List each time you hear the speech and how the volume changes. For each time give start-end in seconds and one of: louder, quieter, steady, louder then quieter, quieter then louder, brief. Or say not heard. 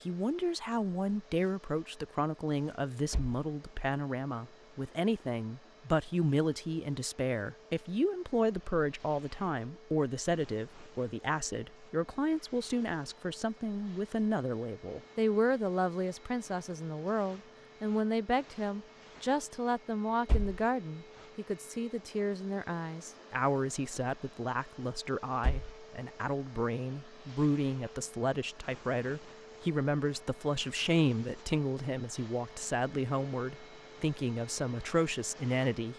0.1-35.9 steady.